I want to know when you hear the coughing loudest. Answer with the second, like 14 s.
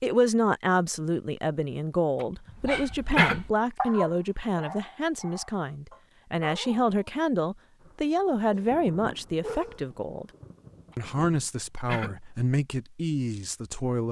3 s.